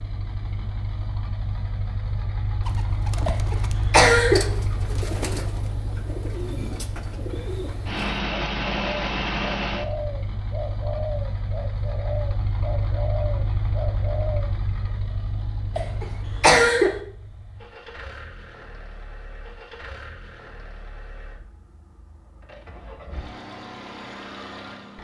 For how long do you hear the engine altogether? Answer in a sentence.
The engine can be heard for 25 seconds in total.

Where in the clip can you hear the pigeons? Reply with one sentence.
The pigeons can be heard from 2.6 to 14.4 s.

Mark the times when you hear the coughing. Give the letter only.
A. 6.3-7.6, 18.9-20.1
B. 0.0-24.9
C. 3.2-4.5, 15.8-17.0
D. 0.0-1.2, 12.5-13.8
C.